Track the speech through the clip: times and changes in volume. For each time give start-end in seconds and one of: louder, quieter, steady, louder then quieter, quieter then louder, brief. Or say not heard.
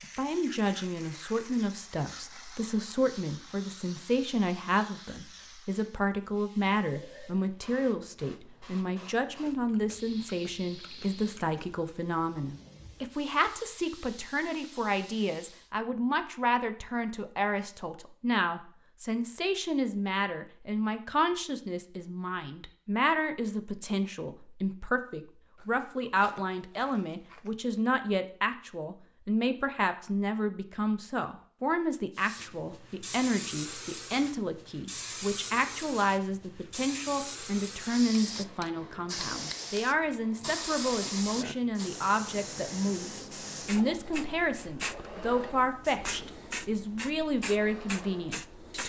0.0-48.8 steady.